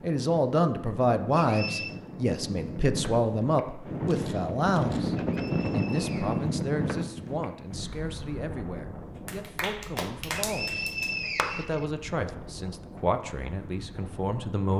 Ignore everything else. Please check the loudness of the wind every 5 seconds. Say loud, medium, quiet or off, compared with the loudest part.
loud, loud, quiet.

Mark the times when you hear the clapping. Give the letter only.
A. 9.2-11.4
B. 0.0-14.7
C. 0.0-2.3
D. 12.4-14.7
A.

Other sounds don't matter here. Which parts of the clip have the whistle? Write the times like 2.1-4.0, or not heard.
1.4-2.0, 5.2-6.5, 10.3-12.3.